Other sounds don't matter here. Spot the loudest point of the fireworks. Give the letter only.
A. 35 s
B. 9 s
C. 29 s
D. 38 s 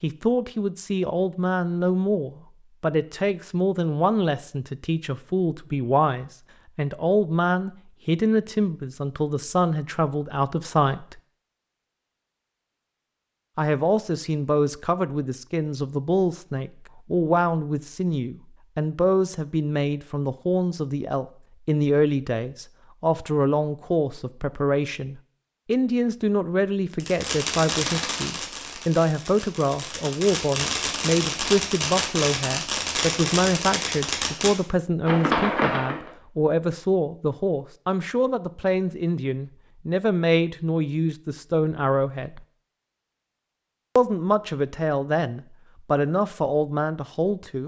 A.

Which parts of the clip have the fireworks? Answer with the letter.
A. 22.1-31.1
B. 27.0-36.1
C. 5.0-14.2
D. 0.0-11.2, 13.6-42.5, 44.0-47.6
B.